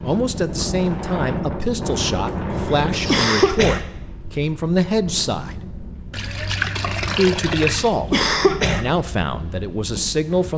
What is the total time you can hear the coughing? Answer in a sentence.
The coughing can be heard for 2 seconds in total.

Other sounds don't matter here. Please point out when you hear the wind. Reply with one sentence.
The wind can be heard from 0.0 to 10.5 s.